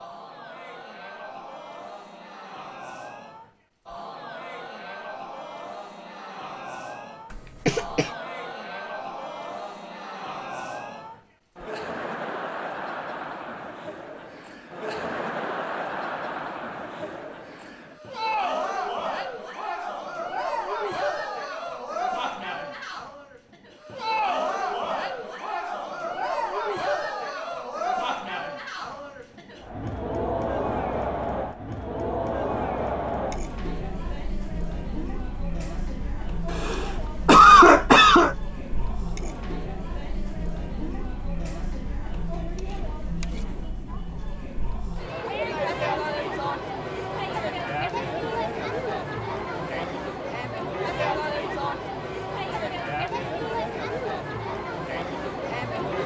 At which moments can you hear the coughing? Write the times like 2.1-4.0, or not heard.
7.3-8.1, 36.5-38.4.